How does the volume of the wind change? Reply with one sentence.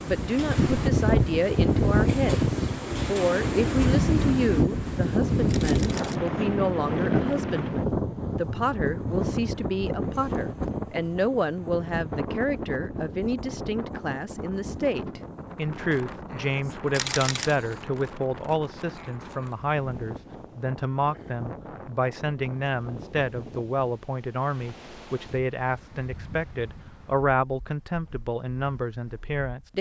The volume of the wind goes down.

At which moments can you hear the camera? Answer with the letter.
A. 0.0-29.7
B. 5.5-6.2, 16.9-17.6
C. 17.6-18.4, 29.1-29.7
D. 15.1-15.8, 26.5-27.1
B.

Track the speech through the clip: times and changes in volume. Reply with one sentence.
You can hear the speech from 0.0 to 29.7 s, at a steady volume.